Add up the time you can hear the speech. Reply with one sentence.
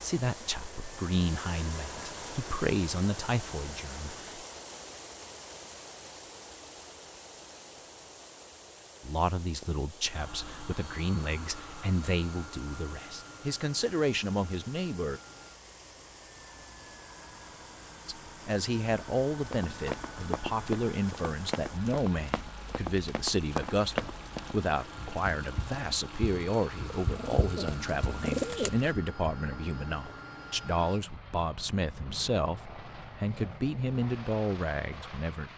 You can hear the speech for 28 seconds altogether.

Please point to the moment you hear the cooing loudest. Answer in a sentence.
The loudest moment of the cooing is at 28 seconds.